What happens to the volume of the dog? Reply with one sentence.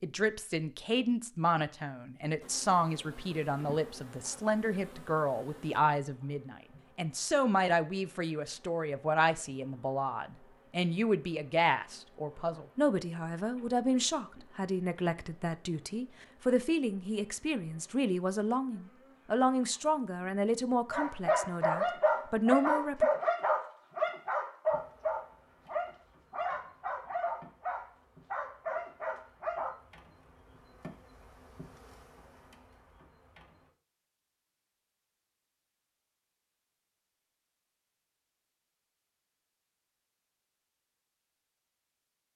The volume of the dog goes down.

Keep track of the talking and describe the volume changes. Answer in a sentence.
The loudness of the talking stays about the same.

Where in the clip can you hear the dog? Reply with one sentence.
You can hear the dog from 20.9 to 29.8 s.